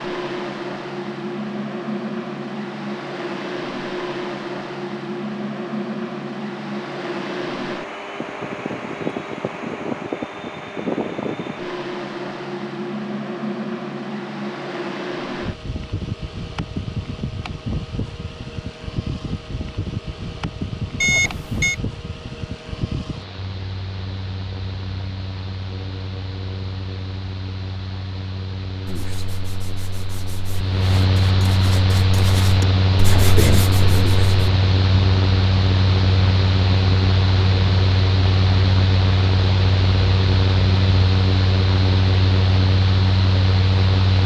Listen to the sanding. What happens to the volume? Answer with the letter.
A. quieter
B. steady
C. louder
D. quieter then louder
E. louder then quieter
C.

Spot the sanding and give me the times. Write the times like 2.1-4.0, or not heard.
28.9-34.5.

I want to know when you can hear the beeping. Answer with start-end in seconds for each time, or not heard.
21.0-21.8.